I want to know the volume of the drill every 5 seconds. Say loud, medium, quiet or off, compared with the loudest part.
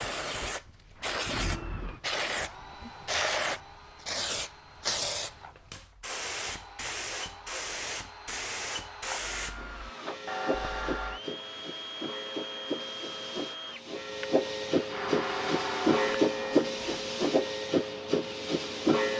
medium, medium, loud, loud.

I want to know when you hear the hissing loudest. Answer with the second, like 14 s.
16 s.